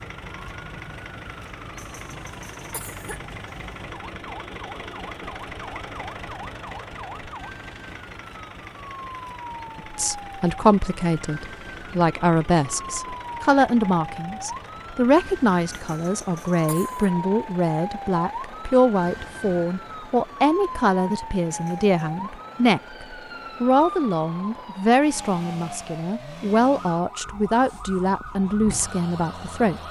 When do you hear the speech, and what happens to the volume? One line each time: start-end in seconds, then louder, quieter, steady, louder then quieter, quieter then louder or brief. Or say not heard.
9.8-29.8 steady.